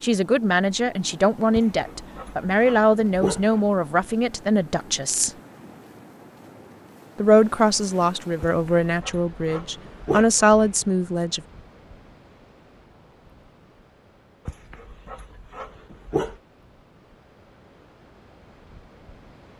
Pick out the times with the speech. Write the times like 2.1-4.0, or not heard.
0.0-5.3, 7.2-11.4.